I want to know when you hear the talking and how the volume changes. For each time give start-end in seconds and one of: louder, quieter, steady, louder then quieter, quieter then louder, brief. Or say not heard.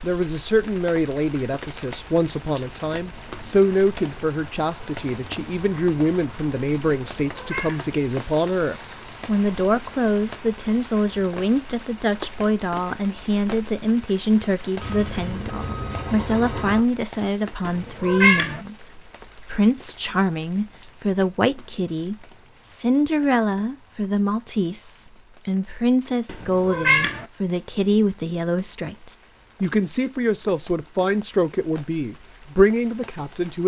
0.0-33.6 steady.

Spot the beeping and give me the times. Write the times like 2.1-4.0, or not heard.
14.8-16.8.